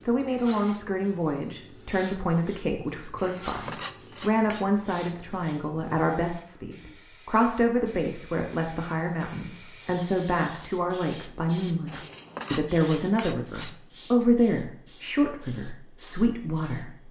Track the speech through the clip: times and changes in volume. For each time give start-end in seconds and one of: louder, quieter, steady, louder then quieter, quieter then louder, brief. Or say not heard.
0.1-17.0 steady.